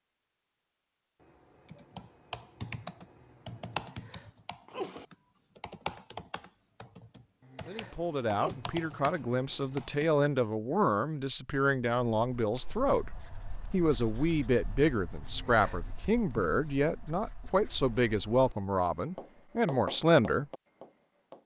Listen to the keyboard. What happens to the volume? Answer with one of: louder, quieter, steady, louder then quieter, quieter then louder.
quieter then louder.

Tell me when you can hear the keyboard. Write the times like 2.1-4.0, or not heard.
1.6-10.2.